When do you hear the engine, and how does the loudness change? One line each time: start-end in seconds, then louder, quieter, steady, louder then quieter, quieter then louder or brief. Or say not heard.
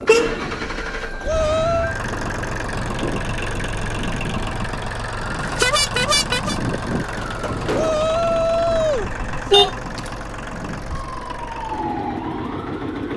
0.0-13.1 steady.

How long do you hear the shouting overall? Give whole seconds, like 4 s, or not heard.
3 s.